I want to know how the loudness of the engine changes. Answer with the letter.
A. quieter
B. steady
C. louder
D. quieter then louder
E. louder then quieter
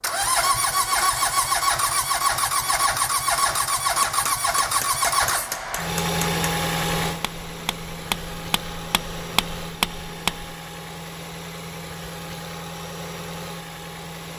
A.